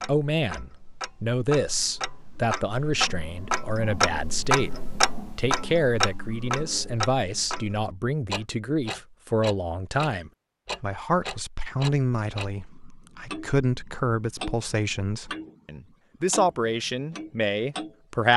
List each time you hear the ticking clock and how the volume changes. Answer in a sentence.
You can hear the ticking clock from 0.0 to 15.6 s, getting louder then quieter; and briefly from 16.3 to 18.3 s.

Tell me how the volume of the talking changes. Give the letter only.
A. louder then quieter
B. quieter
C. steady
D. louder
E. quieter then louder
C.